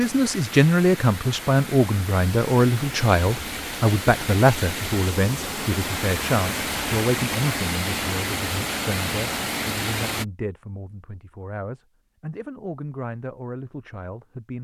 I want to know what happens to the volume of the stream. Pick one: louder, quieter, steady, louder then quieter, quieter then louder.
louder.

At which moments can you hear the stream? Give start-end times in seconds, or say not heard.
0.0-10.2.